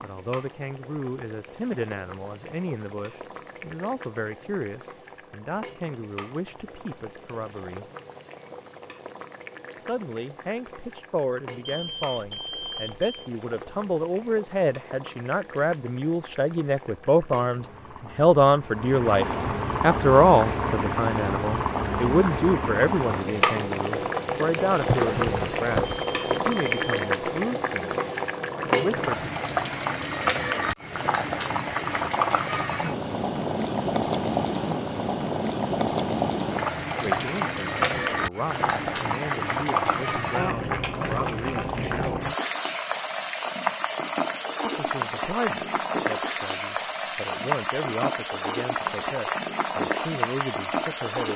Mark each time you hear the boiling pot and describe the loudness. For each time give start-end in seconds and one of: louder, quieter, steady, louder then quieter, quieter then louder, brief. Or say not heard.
0.0-51.3 louder.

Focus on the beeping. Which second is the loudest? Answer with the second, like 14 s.
12 s.